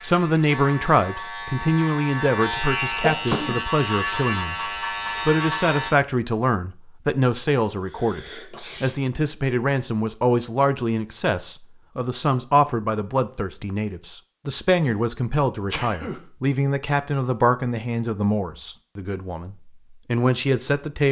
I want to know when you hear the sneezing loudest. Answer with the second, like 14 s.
3 s.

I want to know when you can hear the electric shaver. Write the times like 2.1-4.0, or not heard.
0.0-6.0.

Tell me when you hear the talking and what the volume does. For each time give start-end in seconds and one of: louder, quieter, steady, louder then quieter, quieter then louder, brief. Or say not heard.
0.0-21.0 steady.